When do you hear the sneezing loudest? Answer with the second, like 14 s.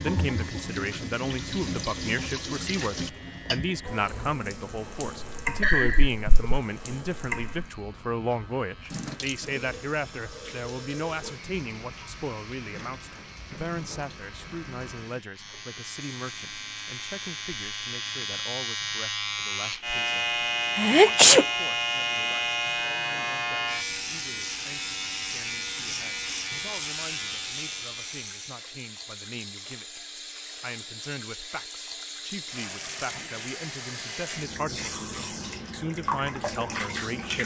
21 s.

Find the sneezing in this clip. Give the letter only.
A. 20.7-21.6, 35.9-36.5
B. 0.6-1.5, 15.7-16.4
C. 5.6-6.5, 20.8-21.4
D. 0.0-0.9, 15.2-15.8
C.